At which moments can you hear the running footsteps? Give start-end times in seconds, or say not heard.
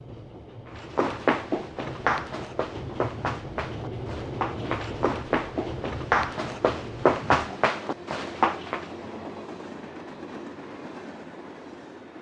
0.8-8.8.